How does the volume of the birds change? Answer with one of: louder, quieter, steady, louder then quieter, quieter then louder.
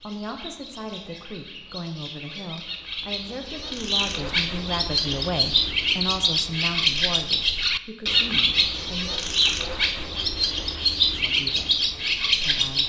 louder.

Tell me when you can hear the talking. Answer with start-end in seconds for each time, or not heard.
0.0-9.1, 11.1-12.8.